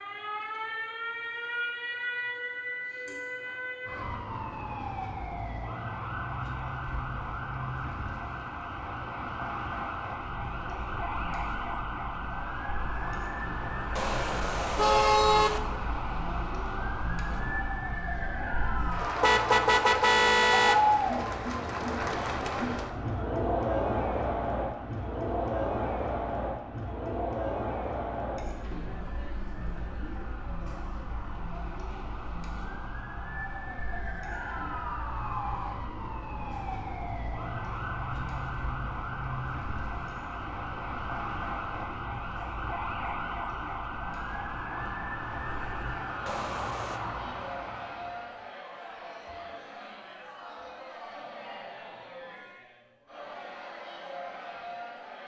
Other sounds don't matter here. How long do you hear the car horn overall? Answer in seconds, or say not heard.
4 s.